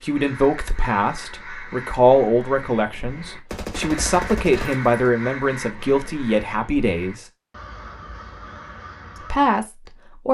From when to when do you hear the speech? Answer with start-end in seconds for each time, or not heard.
0.0-7.2, 9.3-10.2.